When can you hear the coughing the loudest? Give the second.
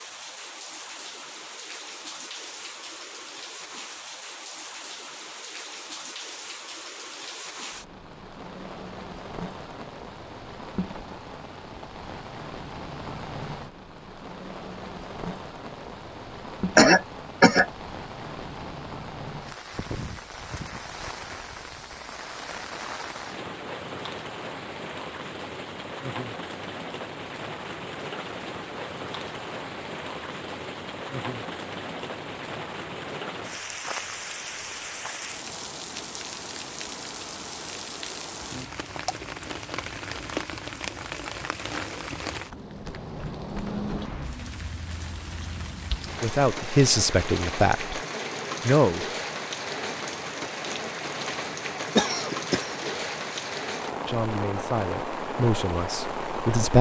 17 s.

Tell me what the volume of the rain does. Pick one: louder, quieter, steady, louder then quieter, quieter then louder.
louder.